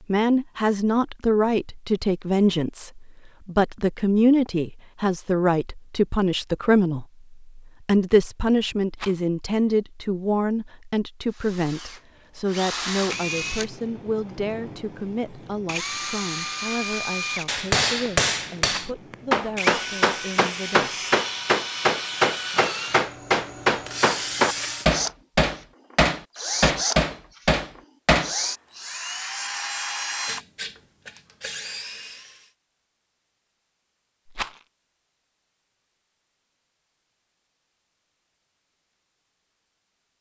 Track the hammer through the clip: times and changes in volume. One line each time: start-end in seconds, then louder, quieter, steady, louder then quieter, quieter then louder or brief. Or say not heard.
17.4-28.3 steady.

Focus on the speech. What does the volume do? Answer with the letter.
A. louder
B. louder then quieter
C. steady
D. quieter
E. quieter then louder
D.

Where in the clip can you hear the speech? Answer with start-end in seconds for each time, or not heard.
0.1-20.9.